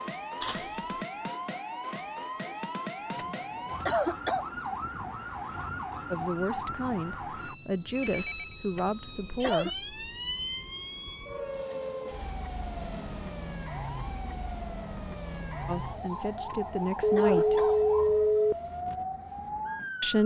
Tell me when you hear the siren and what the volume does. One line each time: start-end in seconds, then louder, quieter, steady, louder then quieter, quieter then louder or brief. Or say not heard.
0.0-20.2 steady.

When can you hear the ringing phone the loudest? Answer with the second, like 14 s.
18 s.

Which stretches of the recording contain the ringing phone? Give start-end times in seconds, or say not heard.
0.4-0.8, 8.0-8.6, 17.0-18.6.